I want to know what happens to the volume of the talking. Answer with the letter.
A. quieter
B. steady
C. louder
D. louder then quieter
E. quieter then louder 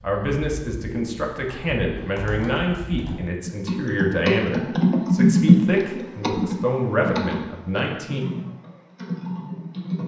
B.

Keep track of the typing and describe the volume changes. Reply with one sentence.
The loudness of the typing goes up, then down.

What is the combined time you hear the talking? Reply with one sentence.
You can hear the talking for 8 seconds altogether.